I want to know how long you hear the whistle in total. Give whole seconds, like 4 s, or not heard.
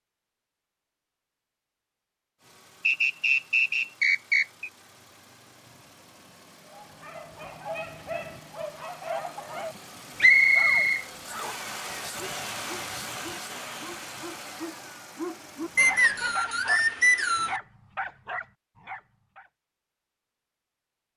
5 s.